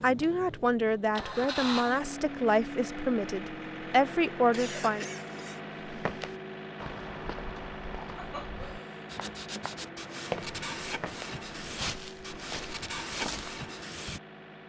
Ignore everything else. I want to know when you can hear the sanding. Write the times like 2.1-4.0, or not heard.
9.1-14.2.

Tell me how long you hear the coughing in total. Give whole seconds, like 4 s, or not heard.
2 s.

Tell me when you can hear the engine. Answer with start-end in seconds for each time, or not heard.
0.0-14.6.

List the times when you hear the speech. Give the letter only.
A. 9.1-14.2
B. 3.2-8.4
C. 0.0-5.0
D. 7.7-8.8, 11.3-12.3
C.